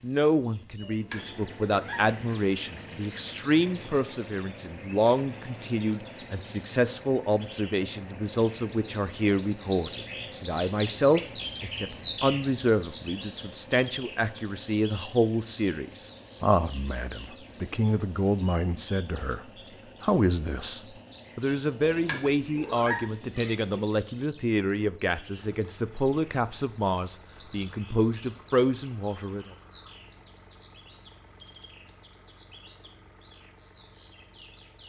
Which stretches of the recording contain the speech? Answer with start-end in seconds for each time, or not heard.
0.0-19.4, 20.0-29.4.